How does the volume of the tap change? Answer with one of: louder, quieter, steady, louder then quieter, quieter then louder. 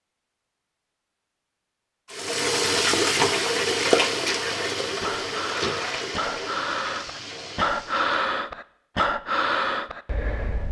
quieter.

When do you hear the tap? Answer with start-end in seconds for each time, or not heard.
2.1-8.1.